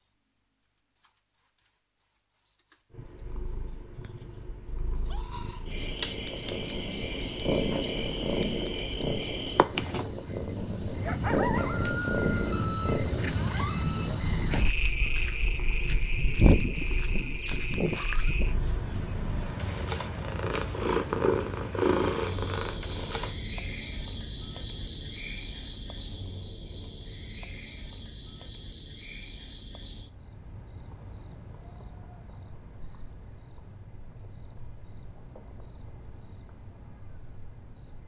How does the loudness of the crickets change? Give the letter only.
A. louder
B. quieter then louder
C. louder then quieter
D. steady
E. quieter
C.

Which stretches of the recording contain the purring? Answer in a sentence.
The purring can be heard from 2.9 to 23.3 s.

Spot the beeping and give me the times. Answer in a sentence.
You can hear the beeping from 12.5 to 14.1 s.